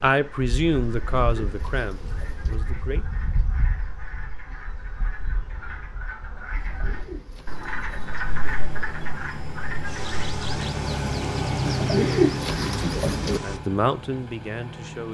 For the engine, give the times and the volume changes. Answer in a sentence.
You can hear the engine from 8.1 to 15.0 s, getting louder then quieter.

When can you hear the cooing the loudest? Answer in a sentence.
The loudest moment of the cooing is at 12 seconds.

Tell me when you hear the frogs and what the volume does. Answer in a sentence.
The frogs can be heard from 0.1 to 10.7 s, getting louder.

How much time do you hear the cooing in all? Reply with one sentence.
You can hear the cooing for 5 seconds altogether.